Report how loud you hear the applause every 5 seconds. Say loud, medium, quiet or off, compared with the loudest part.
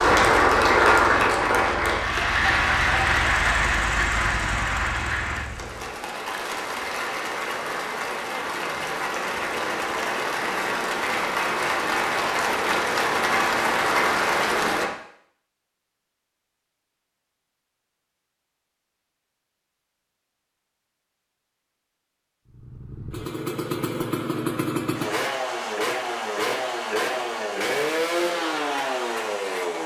loud, medium, loud, off, off, off.